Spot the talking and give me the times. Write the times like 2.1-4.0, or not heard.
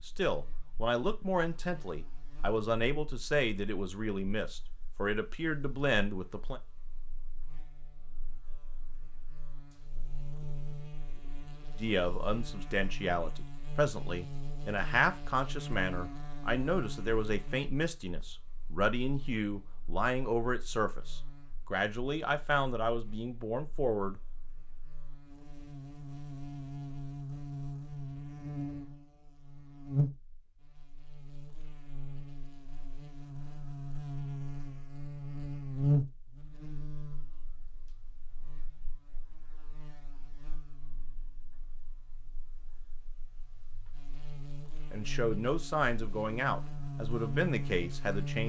0.1-6.6, 11.8-24.3, 44.9-48.4.